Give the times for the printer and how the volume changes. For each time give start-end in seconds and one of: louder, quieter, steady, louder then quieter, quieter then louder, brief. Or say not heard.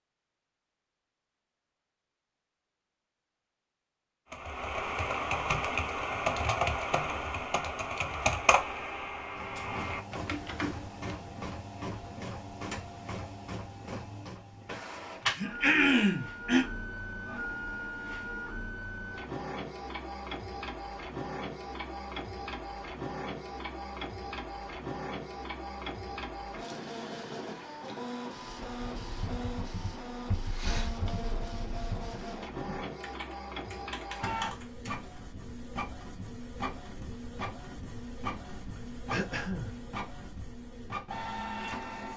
9.2-42.1 steady.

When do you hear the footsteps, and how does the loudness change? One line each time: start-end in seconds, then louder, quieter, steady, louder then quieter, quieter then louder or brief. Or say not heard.
not heard.